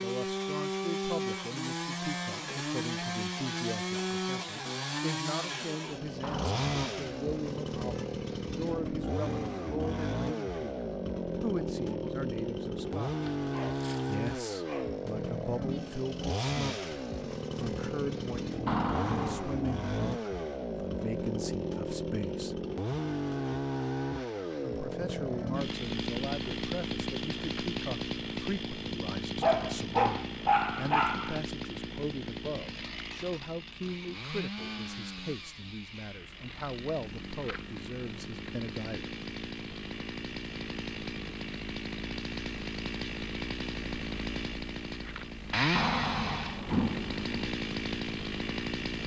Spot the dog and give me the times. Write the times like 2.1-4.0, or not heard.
13.1-15.0, 29.4-31.4.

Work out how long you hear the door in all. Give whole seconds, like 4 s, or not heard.
3 s.